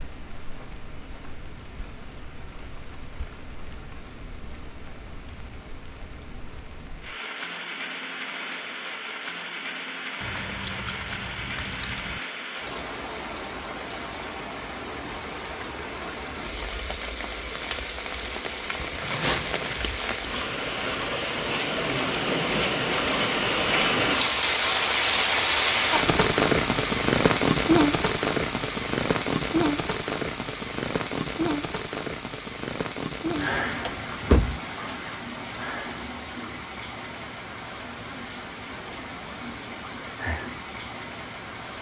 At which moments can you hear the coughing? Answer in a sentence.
You can't hear the coughing here.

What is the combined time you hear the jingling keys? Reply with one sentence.
The jingling keys can be heard for 4 seconds in total.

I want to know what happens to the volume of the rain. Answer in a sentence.
The volume of the rain goes up, then down.